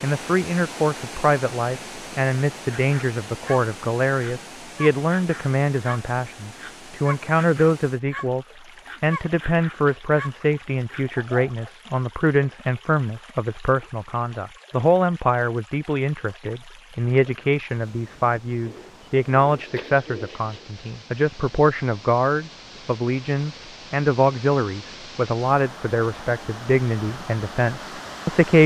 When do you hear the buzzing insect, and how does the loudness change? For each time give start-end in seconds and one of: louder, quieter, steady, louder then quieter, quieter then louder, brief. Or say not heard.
not heard.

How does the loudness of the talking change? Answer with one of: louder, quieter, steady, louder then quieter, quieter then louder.
steady.